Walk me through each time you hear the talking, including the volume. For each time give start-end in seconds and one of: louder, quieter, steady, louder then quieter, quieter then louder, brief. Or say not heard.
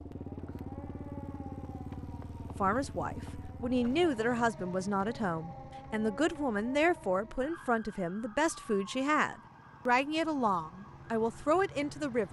2.5-12.2 steady.